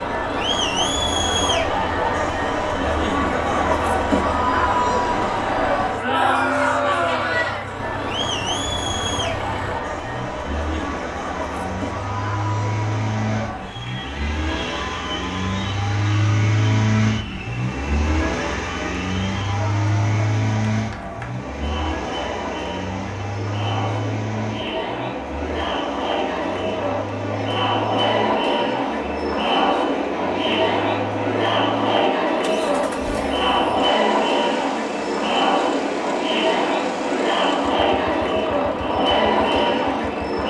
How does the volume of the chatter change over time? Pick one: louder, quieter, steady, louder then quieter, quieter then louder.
quieter then louder.